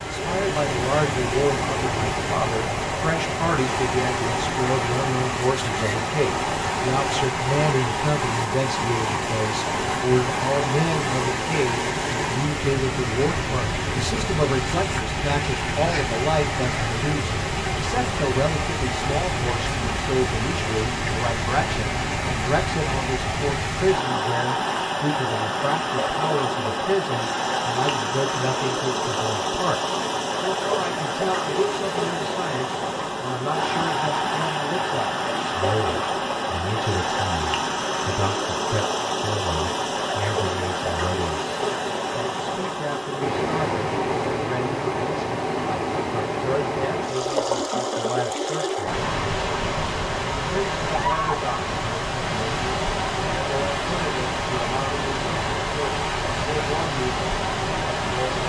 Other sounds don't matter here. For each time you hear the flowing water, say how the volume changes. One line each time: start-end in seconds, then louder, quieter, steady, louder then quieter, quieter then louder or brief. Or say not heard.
0.0-58.4 steady.